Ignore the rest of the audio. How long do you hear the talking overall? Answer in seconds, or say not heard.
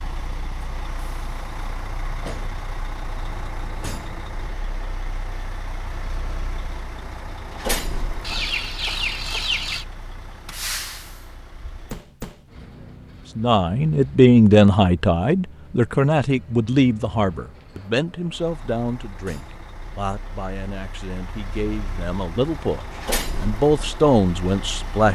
12 s.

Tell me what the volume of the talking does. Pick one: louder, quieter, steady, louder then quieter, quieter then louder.
quieter then louder.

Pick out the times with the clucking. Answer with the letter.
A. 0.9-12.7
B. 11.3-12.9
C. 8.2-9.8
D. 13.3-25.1
C.